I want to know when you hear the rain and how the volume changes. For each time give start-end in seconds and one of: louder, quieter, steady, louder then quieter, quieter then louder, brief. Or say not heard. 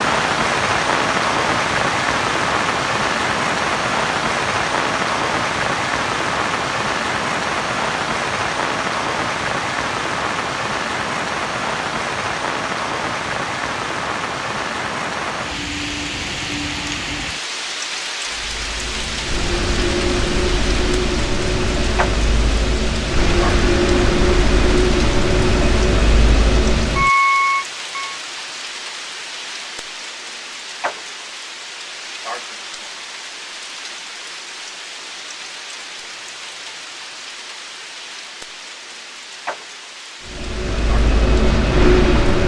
0.0-42.4 quieter.